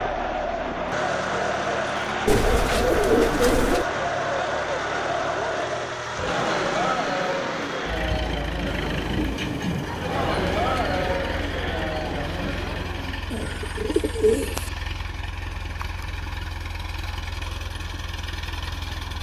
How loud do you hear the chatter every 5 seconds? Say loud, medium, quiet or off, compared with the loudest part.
loud, loud, loud, off.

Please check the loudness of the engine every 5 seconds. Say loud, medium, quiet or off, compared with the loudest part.
loud, loud, medium, medium.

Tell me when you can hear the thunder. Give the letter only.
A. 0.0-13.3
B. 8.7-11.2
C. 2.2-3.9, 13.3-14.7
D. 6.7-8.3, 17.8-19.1
B.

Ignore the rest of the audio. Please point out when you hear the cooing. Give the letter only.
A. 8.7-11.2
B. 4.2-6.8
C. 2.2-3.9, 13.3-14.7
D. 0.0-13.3
C.